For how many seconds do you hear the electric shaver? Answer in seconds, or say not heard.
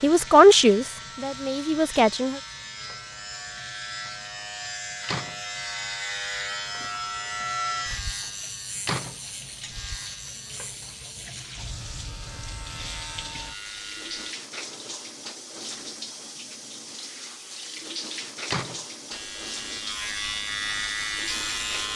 17 s.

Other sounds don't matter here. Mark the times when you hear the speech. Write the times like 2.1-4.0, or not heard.
0.0-2.4.